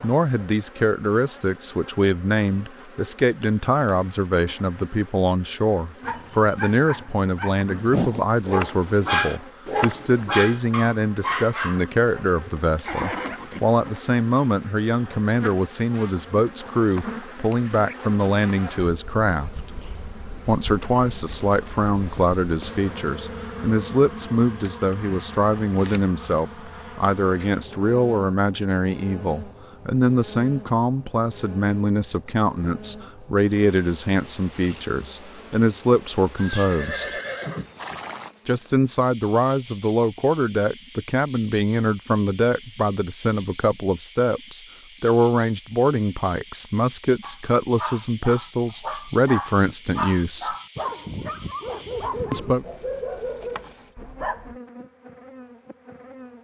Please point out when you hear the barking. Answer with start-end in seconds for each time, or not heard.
6.0-13.4, 47.2-54.5.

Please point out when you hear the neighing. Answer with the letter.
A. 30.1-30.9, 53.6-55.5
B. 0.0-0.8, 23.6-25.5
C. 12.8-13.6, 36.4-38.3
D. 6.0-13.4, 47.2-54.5
C.